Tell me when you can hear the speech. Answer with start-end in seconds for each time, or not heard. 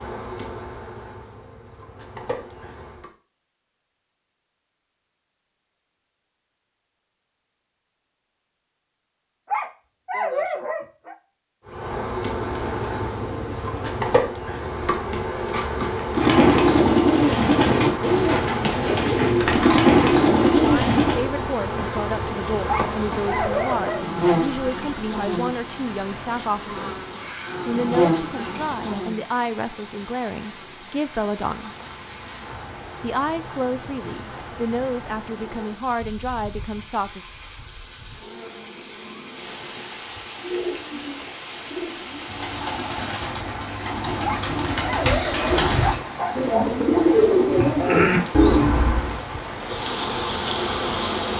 20.6-27.1, 27.6-31.7, 33.0-37.2.